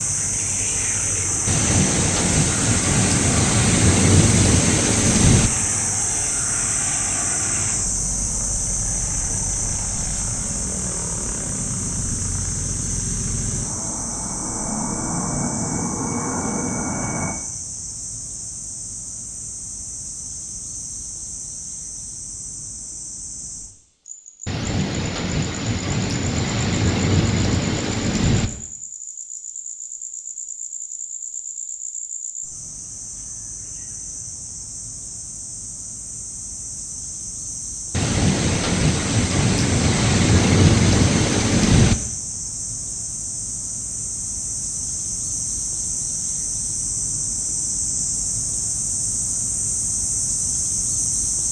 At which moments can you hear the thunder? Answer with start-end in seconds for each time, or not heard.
1.4-5.5, 24.4-28.5, 37.9-42.0.